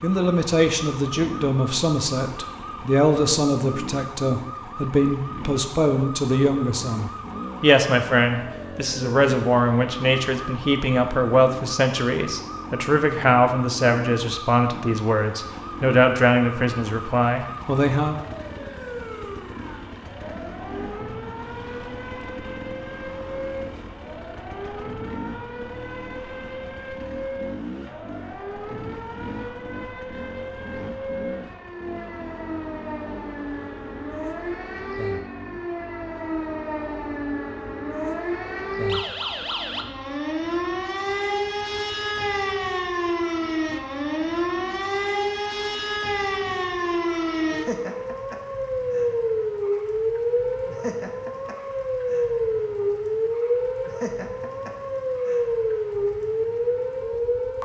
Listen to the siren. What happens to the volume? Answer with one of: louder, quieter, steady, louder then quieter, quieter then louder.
louder.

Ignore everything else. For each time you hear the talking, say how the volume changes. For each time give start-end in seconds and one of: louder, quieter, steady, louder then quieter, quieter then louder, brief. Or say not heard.
0.0-18.2 steady.